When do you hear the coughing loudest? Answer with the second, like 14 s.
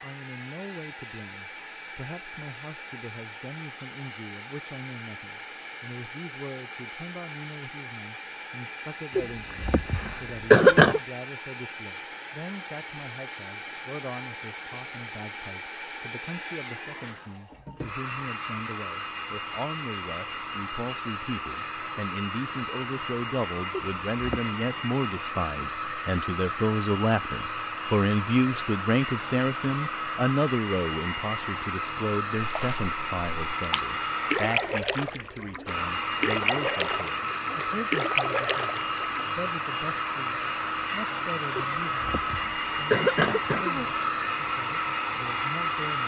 11 s.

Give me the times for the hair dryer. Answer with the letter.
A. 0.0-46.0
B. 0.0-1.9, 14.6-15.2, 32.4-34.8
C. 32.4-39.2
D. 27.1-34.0
A.